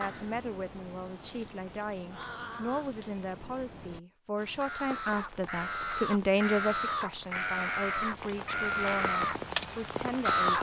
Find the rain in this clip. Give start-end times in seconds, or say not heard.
4.3-10.5.